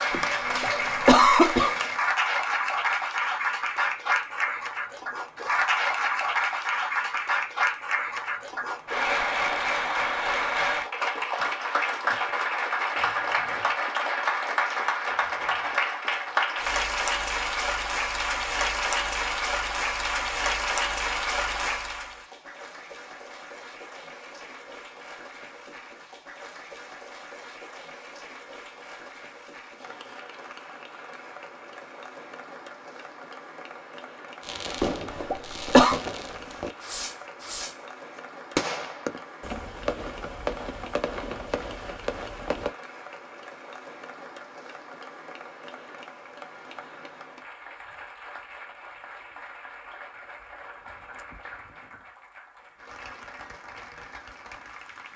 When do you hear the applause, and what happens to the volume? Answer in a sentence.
You can hear the applause from 0.0 to 55.1 s, getting quieter.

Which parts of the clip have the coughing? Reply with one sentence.
You can hear the coughing from 0.1 to 1.8 s and from 34.8 to 36.0 s.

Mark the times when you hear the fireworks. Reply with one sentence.
The fireworks can be heard from 34.4 to 37.8 s and from 38.5 to 42.8 s.